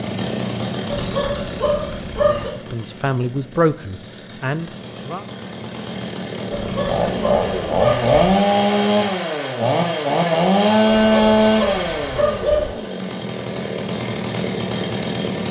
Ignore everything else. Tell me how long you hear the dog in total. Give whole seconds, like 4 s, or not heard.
5 s.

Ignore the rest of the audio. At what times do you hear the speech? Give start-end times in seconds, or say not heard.
2.2-5.2.